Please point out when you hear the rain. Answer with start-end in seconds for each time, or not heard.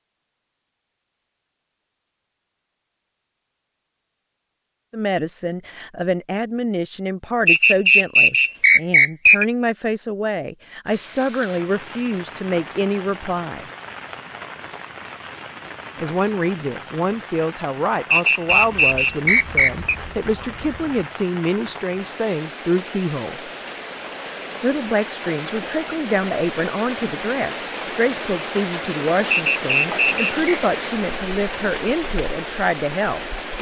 10.8-33.5.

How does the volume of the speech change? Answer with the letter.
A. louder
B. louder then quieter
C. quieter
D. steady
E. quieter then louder
D.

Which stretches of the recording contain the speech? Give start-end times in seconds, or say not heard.
4.9-13.7, 15.9-23.5, 24.6-33.2.